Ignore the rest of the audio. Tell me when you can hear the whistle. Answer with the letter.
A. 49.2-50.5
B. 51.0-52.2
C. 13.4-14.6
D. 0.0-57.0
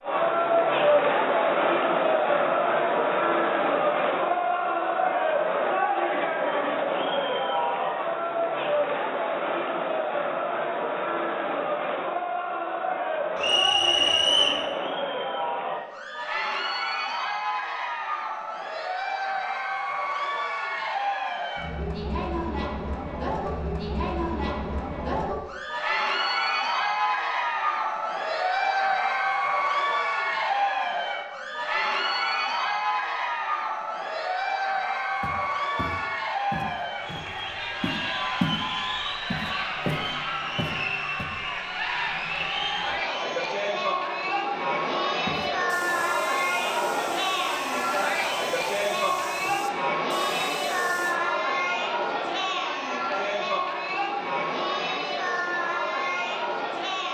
C.